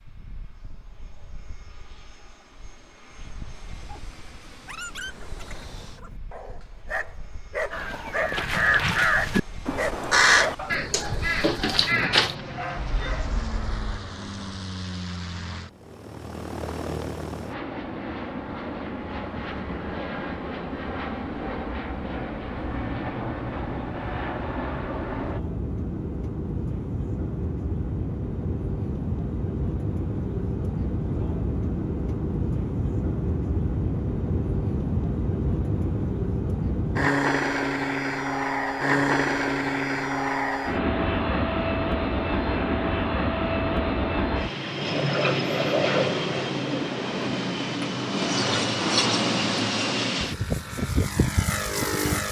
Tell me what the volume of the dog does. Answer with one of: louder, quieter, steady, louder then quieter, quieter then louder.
louder then quieter.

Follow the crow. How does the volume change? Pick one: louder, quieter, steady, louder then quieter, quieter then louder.
quieter.